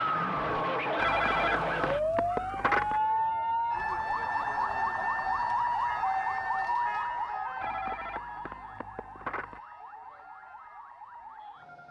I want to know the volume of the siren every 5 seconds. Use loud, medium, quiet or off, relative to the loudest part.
loud, loud, quiet.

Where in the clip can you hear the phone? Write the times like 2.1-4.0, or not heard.
0.9-3.0, 7.6-9.6.